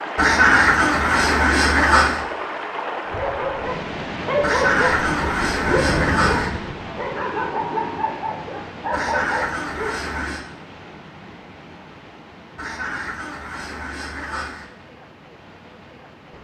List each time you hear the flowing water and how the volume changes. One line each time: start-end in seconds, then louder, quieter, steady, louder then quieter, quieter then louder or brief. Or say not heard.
0.0-16.3 quieter.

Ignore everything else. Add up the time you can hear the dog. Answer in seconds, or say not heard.
7 s.